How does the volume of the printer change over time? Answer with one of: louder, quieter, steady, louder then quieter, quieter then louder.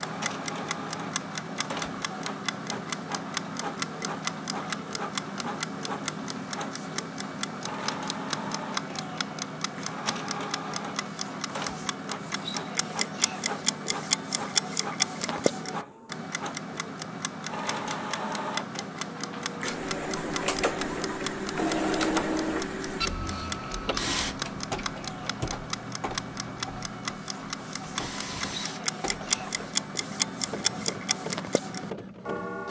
louder then quieter.